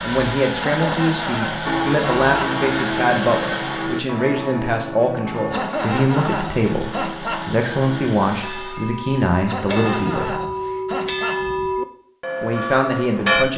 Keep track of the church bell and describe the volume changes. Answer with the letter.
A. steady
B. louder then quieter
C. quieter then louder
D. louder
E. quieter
C.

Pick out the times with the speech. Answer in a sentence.
The speech can be heard from 0.0 to 10.3 s and from 12.4 to 13.5 s.